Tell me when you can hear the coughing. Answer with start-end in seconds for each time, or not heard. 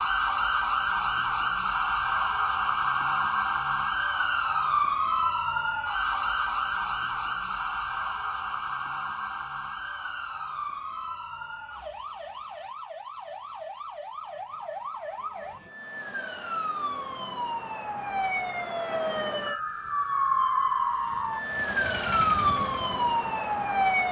not heard.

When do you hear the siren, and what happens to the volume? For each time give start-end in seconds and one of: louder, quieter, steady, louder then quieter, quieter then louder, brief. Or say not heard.
0.0-24.0 quieter then louder.